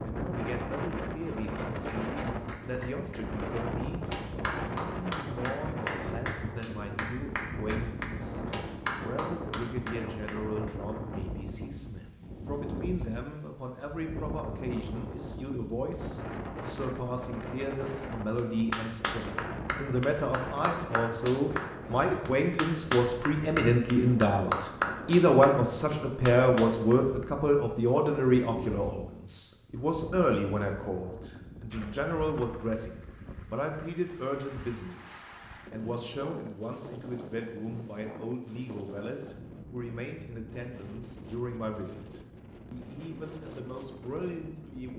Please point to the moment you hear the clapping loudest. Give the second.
25 s.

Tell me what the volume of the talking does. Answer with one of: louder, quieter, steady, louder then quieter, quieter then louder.
louder then quieter.